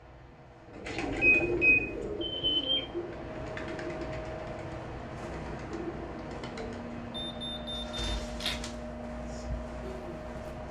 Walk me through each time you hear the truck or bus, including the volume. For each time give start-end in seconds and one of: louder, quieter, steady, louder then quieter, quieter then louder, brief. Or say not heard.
0.0-10.6 louder.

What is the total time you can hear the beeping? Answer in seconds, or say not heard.
3 s.